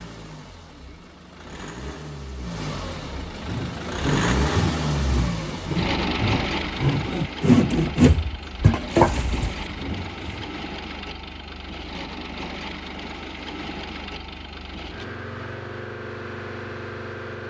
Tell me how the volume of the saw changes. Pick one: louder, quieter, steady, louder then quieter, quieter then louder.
louder.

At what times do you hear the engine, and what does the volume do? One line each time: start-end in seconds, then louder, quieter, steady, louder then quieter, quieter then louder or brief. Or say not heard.
0.0-17.4 louder then quieter.